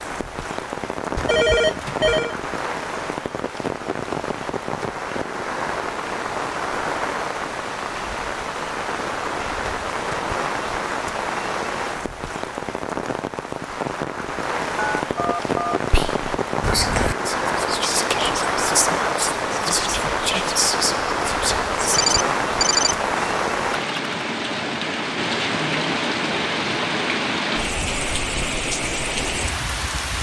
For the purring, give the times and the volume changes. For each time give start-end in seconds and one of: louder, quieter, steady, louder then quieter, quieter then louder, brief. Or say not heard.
not heard.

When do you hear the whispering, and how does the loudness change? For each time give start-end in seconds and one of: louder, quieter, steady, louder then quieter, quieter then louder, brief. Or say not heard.
15.9-21.9 steady.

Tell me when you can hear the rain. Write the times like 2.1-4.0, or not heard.
0.0-30.1.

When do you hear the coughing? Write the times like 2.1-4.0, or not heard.
not heard.